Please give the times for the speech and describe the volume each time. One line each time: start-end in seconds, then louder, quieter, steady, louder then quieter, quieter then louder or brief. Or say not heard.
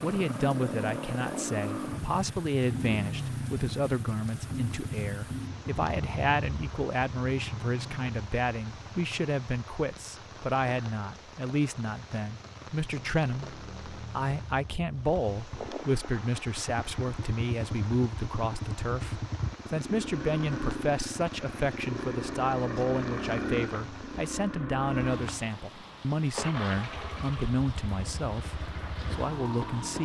0.0-30.0 steady.